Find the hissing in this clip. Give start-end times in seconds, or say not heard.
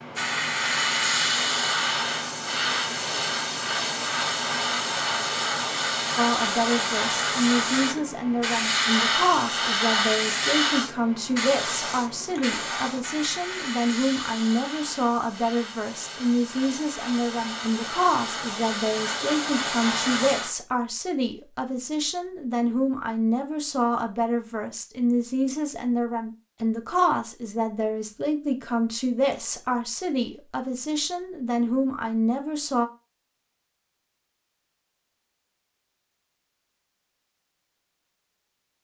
0.0-20.6.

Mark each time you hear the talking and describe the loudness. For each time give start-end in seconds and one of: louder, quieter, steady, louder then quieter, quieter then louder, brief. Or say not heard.
6.2-32.9 steady.